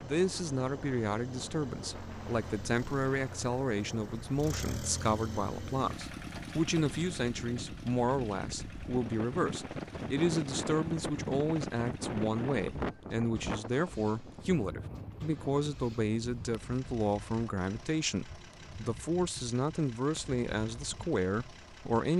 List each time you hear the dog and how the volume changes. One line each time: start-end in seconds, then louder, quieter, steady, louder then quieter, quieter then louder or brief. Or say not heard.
not heard.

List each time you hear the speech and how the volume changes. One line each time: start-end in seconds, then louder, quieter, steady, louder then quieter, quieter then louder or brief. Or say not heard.
0.0-22.1 steady.